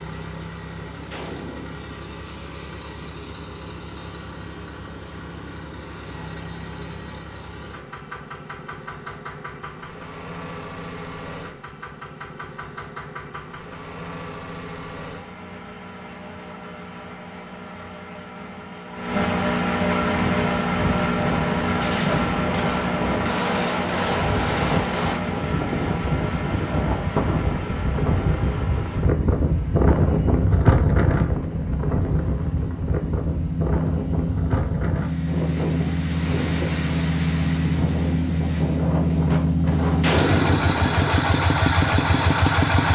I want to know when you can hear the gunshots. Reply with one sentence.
The gunshots can be heard from 0.9 to 1.9 s, from 21.8 to 25.2 s and from 39.7 to 40.9 s.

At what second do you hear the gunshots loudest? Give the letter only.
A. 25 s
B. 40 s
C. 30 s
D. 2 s
B.